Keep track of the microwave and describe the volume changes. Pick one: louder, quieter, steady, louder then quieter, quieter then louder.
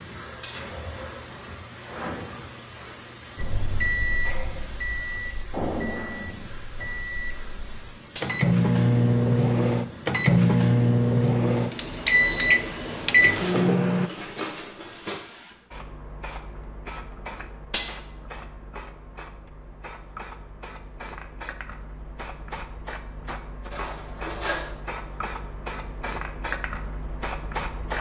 quieter then louder.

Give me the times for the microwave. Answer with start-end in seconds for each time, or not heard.
3.4-14.1.